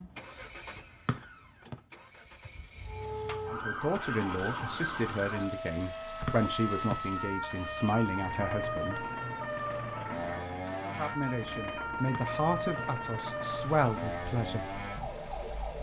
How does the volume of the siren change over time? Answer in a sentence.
The volume of the siren stays about the same.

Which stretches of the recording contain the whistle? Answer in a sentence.
The whistle can be heard from 1.1 to 1.8 s, from 6.2 to 7.0 s and from 12.1 to 12.8 s.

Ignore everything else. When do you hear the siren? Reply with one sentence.
The siren can be heard from 2.9 to 15.7 s.